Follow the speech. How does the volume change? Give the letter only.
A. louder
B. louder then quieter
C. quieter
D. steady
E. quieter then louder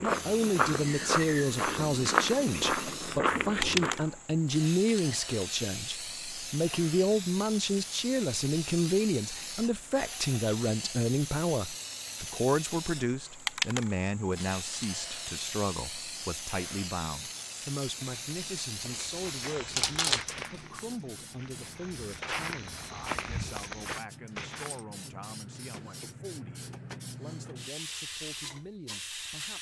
C.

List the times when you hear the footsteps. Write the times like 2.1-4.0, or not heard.
0.0-4.1, 18.8-24.8.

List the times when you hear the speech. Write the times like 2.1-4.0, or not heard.
0.0-29.5.